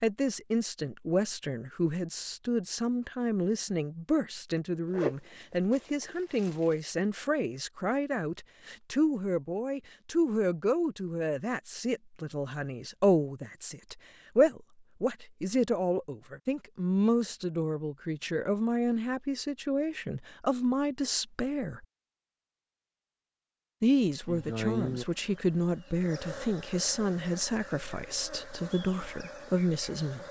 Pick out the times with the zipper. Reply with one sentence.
You can hear the zipper from 4.9 to 6.8 s.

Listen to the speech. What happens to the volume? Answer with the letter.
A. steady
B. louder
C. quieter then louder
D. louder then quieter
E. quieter
A.